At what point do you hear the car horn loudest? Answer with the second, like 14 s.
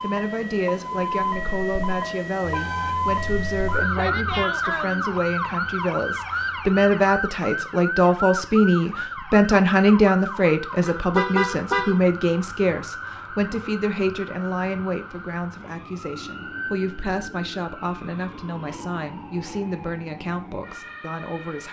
11 s.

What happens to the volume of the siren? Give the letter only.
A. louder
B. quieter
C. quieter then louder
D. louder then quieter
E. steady
B.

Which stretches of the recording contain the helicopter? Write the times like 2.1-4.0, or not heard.
not heard.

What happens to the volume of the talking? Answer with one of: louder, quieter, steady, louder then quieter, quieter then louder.
louder then quieter.